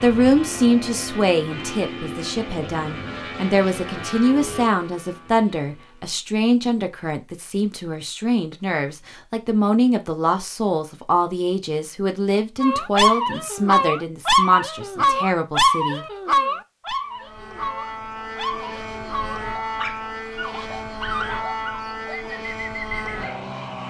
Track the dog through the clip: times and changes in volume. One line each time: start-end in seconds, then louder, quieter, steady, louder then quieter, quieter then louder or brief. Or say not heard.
12.6-23.1 quieter.